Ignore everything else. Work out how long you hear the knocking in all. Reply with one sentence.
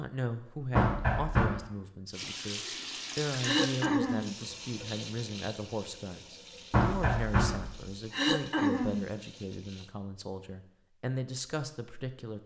You can hear the knocking for 2 seconds altogether.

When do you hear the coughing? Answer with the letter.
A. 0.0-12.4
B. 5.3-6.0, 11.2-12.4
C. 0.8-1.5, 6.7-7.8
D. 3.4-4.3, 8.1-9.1
D.